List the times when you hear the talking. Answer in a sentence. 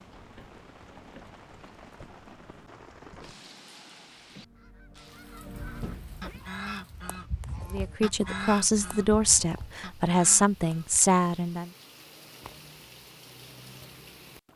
The talking can be heard from 7.7 to 11.7 s.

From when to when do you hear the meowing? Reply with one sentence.
The meowing can be heard from 5.5 to 6.5 s.